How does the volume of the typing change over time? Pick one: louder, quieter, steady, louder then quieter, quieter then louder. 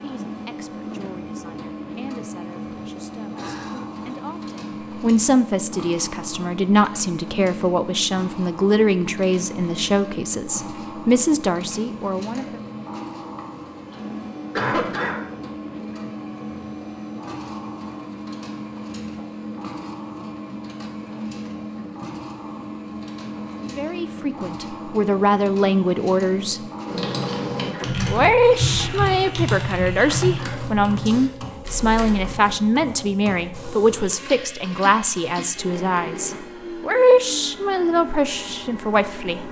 quieter.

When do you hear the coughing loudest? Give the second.
15 s.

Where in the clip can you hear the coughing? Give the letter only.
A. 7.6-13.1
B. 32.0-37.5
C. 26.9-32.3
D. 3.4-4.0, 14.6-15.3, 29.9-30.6
D.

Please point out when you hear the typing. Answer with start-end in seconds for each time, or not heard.
26.9-32.3.